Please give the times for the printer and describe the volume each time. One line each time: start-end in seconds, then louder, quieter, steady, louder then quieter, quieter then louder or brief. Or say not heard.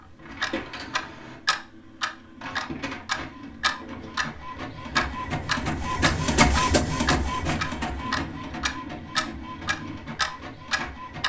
0.0-11.2 louder then quieter.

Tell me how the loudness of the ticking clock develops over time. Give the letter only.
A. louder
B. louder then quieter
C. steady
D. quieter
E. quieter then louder
C.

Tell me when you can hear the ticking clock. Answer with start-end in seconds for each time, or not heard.
0.0-11.2.